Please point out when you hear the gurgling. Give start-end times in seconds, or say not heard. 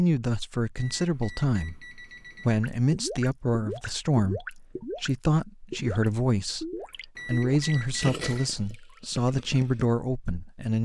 2.6-9.8.